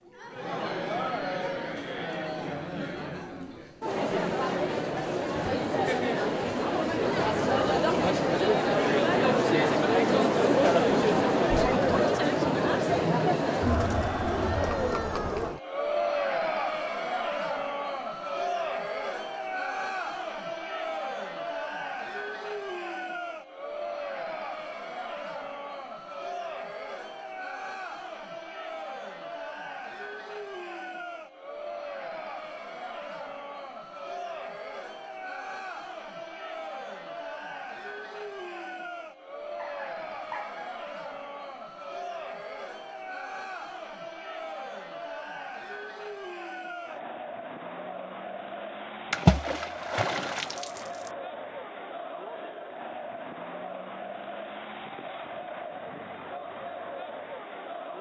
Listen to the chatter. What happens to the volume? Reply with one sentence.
The volume of the chatter goes down.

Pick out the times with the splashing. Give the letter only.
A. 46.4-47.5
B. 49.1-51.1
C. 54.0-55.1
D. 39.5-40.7
B.